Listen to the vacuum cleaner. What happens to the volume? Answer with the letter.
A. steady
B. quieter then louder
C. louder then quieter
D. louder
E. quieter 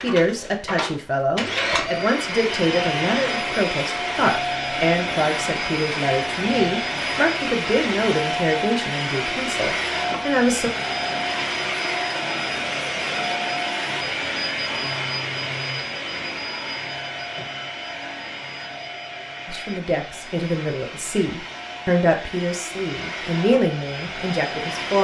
E.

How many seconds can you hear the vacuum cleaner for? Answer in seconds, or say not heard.
25 s.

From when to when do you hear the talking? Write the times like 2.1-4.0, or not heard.
0.0-10.7, 19.4-24.9.